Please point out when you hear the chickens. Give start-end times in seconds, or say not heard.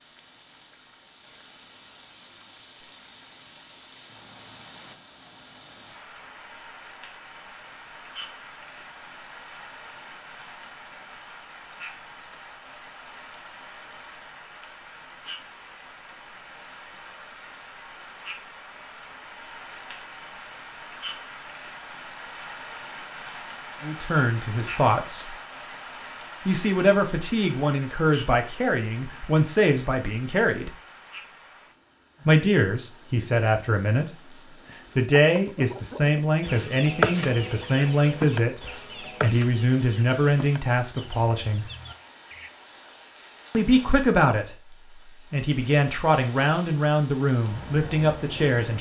35.2-42.5.